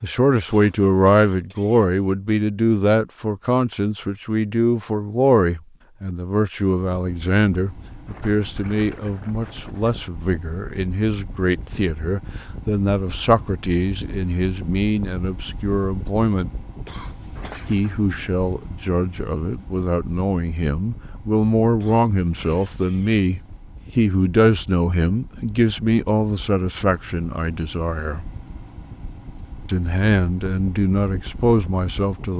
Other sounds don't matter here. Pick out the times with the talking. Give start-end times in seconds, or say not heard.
0.0-16.5, 17.6-28.2, 29.6-32.3.